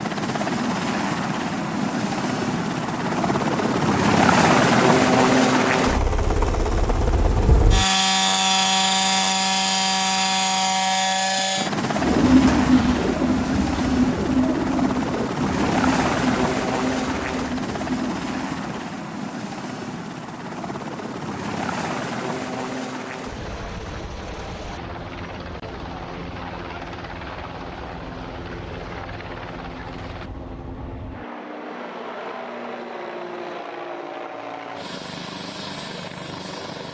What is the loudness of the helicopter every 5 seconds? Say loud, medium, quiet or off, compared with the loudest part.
loud, loud, loud, medium, medium, quiet, quiet, quiet.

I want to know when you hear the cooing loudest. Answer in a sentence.
The volume of the cooing peaks at 12 seconds.